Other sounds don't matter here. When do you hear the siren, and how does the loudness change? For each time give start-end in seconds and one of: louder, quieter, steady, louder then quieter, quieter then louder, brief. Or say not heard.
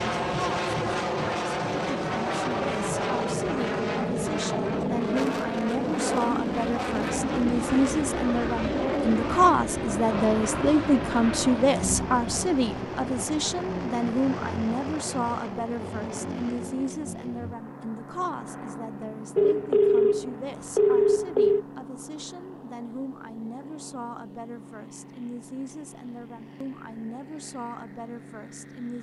not heard.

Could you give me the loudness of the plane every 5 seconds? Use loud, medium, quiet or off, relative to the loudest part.
loud, loud, loud, medium, quiet, quiet.